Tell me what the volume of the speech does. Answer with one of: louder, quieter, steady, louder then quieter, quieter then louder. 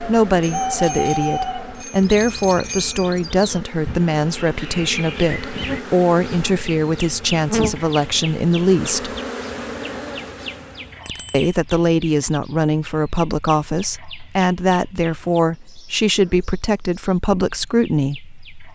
steady.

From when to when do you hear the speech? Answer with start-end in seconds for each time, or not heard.
0.1-9.1, 11.3-18.7.